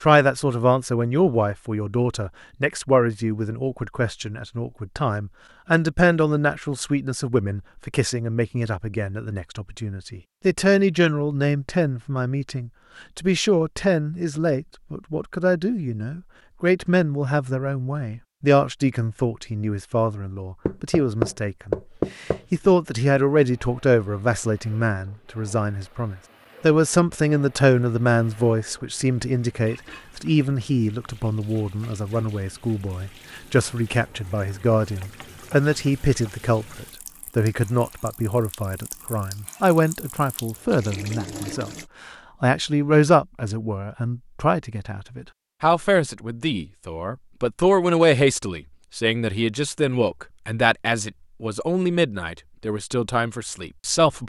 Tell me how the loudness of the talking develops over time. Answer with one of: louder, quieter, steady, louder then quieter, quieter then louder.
steady.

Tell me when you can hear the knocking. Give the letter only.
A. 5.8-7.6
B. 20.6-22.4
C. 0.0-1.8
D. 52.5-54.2
B.